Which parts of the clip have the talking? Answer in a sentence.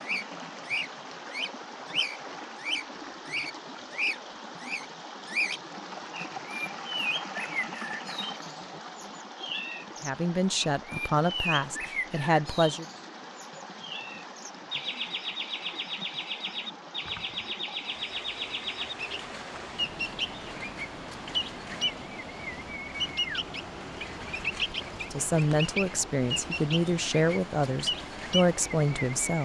You can hear the talking from 10.0 to 12.8 s and from 25.1 to 29.4 s.